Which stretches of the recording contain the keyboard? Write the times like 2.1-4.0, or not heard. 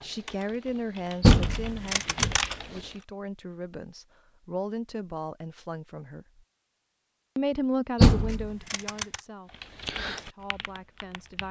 0.0-3.0, 9.4-11.4.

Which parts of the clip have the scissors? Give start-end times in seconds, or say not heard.
1.5-2.5, 8.2-9.2.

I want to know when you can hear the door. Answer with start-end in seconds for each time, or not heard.
1.2-2.4, 8.0-8.5.